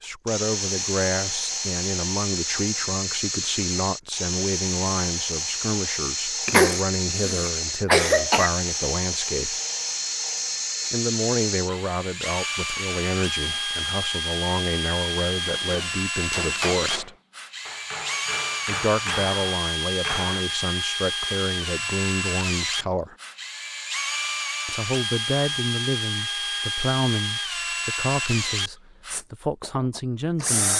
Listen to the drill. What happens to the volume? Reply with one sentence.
The loudness of the drill stays about the same.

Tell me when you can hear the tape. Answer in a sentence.
The tape can't be heard in this clip.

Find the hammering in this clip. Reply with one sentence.
You can hear the hammering from 15.3 to 20.4 s.